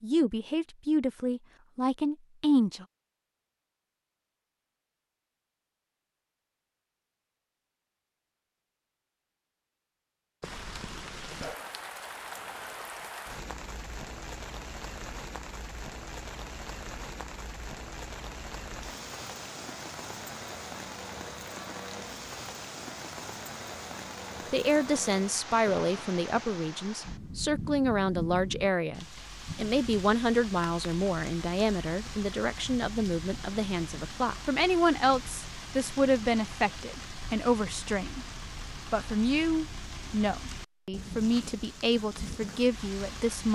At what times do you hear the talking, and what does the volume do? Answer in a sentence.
You can hear the talking briefly from 0.0 to 2.9 s; and from 24.5 to 43.5 s, at a steady volume.